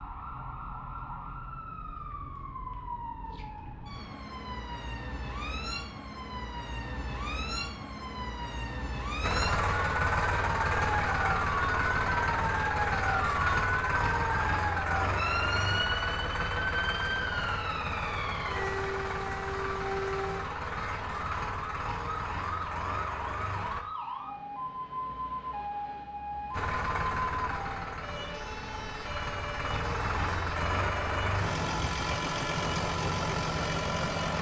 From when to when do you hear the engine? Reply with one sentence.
You can hear the engine from 9.2 to 23.9 s and from 26.5 to 34.3 s.